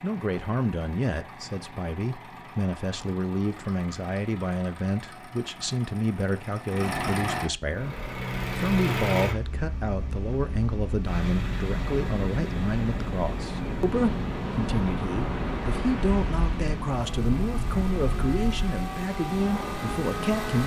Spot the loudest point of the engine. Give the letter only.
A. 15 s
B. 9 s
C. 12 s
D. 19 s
B.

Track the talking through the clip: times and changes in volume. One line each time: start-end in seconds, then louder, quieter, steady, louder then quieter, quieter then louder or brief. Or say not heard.
0.0-20.6 steady.